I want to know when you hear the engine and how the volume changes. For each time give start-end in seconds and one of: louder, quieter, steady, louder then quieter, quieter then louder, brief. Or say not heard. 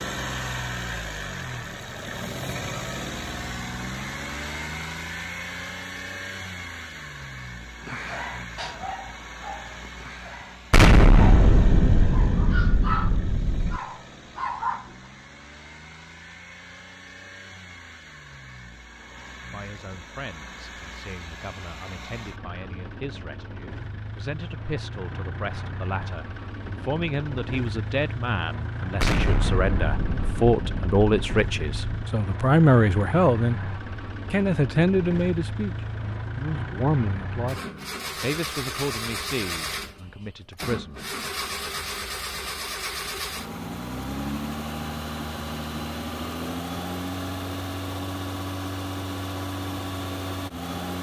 0.0-50.9 quieter then louder.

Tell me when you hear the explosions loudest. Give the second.
11 s.